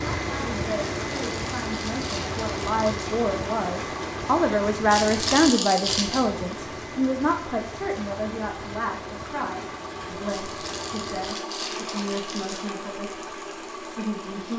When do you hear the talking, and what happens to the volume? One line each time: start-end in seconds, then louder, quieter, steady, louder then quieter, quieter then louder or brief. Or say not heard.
0.1-14.5 louder then quieter.